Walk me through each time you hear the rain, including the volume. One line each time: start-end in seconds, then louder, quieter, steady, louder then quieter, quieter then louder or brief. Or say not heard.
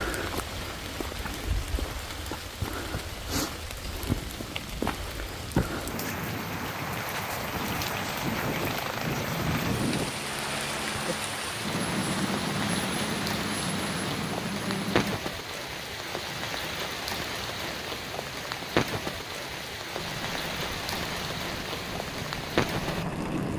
0.0-23.5 steady.